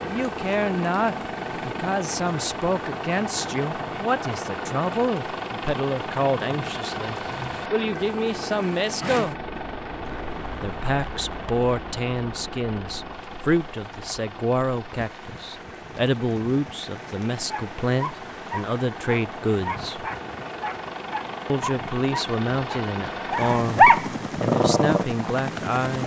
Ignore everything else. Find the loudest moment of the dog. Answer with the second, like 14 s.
24 s.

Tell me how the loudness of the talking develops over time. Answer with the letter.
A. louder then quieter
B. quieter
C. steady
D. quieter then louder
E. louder
C.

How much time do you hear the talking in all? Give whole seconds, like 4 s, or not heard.
23 s.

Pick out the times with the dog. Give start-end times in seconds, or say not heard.
17.5-25.1.